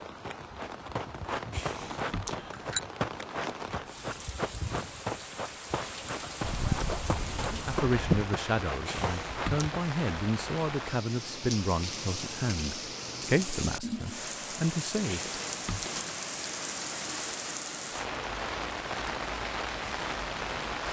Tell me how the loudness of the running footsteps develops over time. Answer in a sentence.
The volume of the running footsteps stays about the same.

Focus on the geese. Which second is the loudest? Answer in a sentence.
The loudest moment of the geese is at 8 seconds.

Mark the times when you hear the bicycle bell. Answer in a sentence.
You can hear the bicycle bell from 1.5 to 2.8 s, from 8.8 to 9.7 s and from 15.1 to 16.1 s.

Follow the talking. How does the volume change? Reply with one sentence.
The loudness of the talking stays about the same.